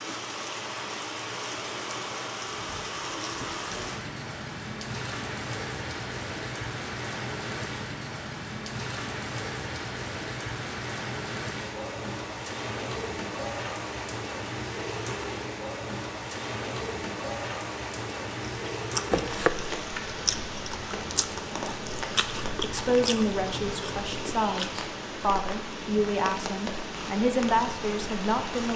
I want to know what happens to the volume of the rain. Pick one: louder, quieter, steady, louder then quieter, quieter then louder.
steady.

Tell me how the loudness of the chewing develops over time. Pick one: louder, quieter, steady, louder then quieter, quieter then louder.
quieter.